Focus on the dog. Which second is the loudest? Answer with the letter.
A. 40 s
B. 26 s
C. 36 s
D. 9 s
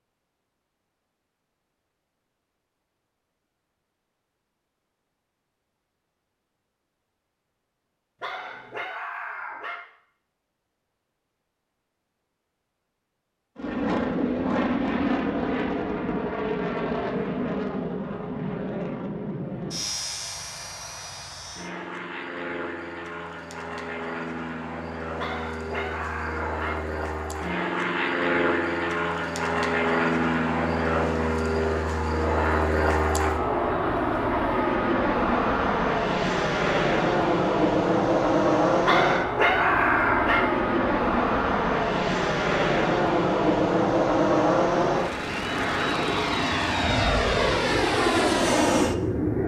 A.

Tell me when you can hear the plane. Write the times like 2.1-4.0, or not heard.
13.6-49.4.